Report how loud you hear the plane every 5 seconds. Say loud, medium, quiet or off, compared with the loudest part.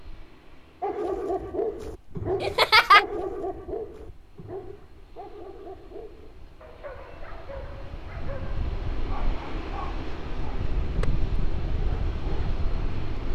quiet, medium, loud.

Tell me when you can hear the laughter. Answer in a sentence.
You can hear the laughter from 2.4 to 3.0 s.